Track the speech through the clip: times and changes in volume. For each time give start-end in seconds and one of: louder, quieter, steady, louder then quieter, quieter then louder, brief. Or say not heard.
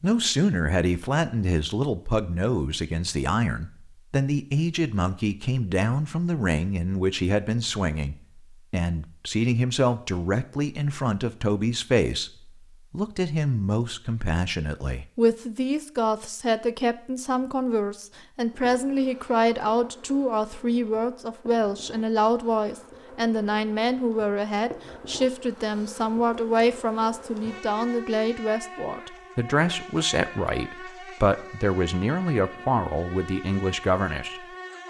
0.0-34.4 steady.